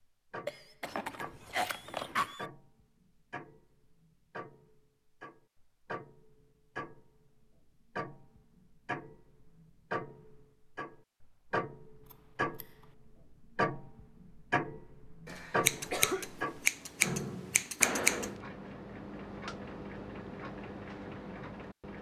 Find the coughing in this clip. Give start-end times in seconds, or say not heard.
0.5-2.5, 15.2-16.2.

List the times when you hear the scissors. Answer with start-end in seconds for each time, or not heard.
0.8-2.4, 12.1-12.8, 15.7-18.3.